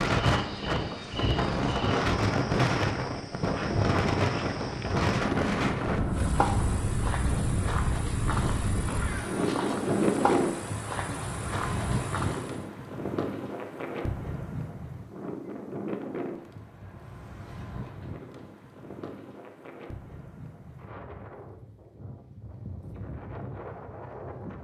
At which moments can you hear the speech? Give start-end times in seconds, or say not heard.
not heard.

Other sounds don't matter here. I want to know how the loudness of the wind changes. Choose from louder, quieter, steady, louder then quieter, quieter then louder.
quieter.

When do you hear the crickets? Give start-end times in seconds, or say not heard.
0.2-12.7.